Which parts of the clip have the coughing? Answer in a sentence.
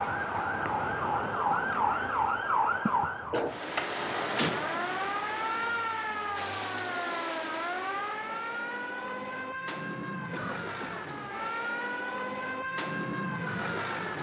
The coughing can be heard from 2.9 to 3.6 s and from 10.3 to 11.6 s.